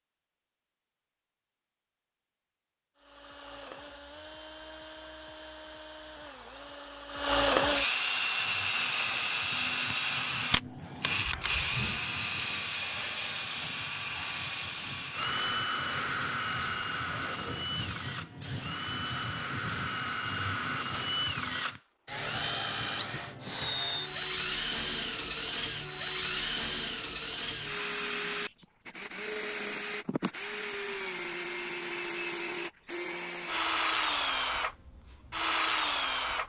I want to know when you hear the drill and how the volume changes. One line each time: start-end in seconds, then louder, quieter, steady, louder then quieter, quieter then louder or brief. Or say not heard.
3.0-36.4 quieter.